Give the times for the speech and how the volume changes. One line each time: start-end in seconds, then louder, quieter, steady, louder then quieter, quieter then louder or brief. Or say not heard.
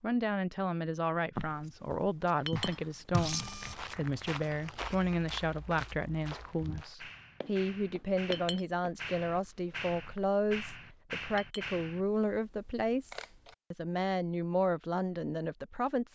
0.0-16.1 steady.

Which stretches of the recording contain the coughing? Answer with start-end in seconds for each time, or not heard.
not heard.